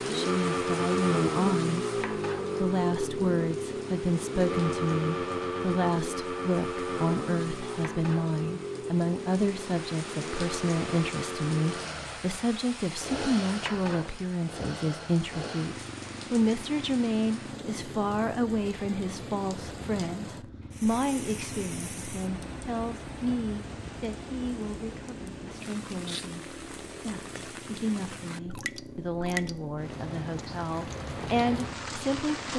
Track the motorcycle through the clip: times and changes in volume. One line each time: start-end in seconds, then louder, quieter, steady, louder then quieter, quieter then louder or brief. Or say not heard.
0.0-32.5 quieter.